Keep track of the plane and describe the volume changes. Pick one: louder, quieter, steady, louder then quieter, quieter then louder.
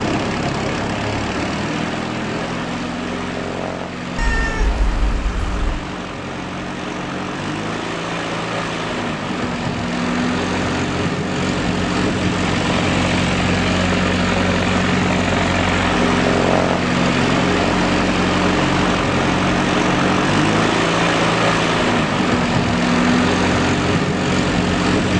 louder.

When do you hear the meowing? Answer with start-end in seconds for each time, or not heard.
4.2-5.8.